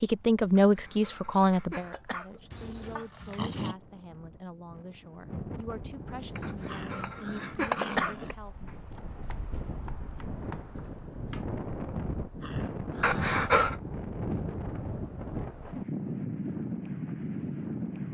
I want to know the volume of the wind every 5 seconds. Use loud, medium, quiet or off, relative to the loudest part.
quiet, medium, loud, loud.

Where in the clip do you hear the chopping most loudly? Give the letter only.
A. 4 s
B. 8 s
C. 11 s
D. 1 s
B.